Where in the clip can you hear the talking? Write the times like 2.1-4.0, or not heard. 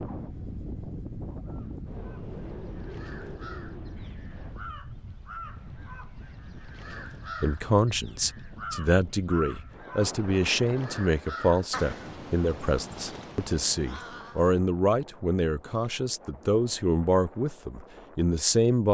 7.4-18.8.